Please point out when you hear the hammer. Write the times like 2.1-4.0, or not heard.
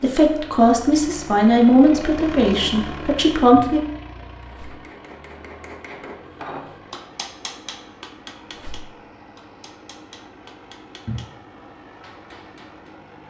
4.5-13.0.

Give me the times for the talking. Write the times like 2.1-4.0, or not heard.
0.0-3.8.